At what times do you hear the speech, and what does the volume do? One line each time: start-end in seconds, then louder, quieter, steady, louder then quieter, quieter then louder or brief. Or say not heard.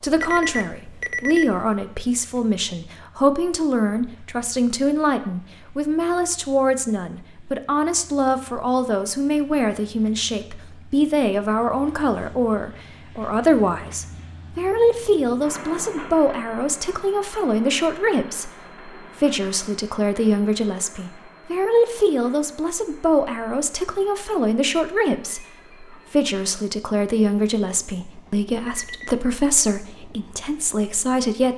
0.0-31.5 steady.